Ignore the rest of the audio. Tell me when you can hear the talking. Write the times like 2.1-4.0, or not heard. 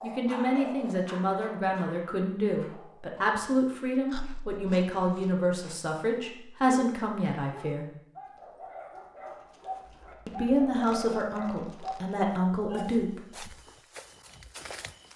0.0-7.8, 10.2-13.5.